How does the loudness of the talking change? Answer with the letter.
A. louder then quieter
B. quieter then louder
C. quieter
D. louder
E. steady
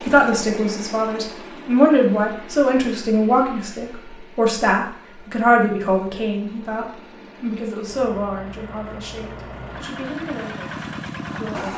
C.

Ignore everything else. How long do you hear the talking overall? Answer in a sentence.
The talking can be heard for 12 seconds in total.